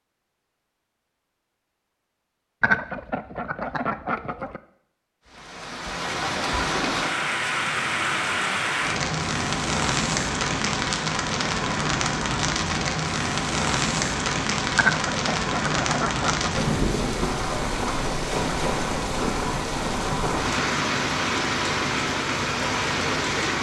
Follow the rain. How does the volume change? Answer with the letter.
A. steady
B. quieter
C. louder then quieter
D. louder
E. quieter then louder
A.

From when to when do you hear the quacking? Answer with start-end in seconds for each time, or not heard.
2.6-4.6, 14.8-16.5.